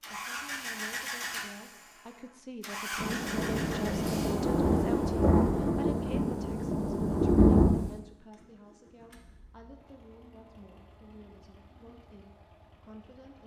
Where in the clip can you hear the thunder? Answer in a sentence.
The thunder can be heard from 3.0 to 7.8 s.